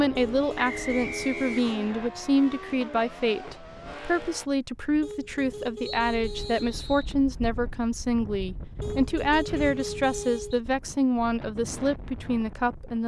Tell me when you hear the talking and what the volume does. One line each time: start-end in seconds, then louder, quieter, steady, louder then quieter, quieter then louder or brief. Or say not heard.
0.0-13.0 steady.